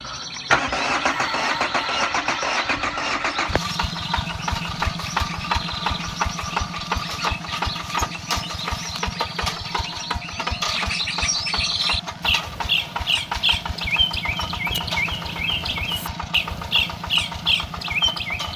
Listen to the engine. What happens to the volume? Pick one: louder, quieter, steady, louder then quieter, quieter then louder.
quieter.